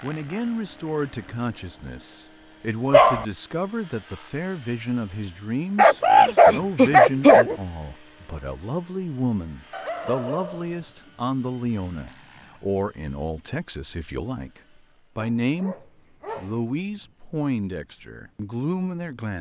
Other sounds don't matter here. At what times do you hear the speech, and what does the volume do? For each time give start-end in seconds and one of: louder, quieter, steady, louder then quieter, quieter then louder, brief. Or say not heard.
0.0-19.3 steady.